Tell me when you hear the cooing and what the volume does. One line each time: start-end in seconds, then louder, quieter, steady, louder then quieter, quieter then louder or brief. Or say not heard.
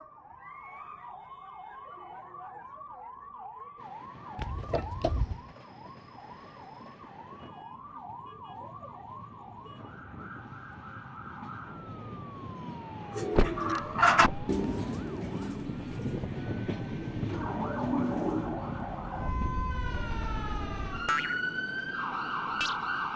13.1-18.6 quieter then louder.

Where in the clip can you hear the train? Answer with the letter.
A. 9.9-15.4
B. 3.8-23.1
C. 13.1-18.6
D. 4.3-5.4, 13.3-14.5
B.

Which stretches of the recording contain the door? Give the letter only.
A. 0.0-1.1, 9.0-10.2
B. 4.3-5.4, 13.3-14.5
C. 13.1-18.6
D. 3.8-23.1
B.